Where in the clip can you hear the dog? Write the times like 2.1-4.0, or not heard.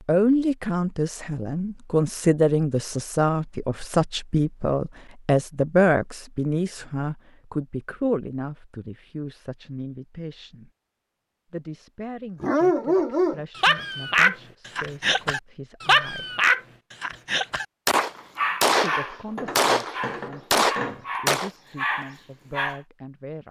12.4-17.6, 18.4-22.8.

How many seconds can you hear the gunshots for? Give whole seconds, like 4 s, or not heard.
4 s.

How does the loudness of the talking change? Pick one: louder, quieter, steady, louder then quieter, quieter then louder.
quieter.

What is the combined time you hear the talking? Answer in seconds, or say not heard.
20 s.